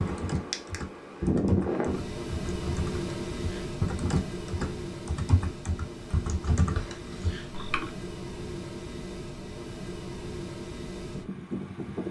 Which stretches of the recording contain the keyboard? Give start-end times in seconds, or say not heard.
0.0-7.9.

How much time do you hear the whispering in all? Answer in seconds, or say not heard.
not heard.